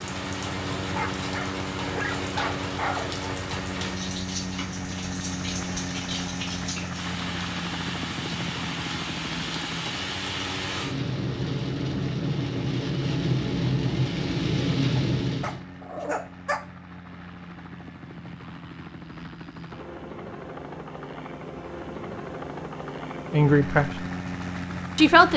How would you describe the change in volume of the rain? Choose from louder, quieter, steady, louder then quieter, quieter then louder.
louder.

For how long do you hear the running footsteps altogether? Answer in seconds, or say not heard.
not heard.